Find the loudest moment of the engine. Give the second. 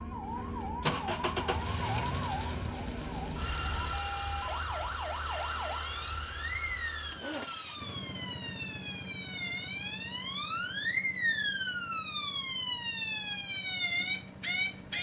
1 s.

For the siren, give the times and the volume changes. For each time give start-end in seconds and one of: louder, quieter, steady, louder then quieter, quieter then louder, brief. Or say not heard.
0.0-14.9 louder.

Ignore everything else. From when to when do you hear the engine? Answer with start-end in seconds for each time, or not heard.
0.0-14.9.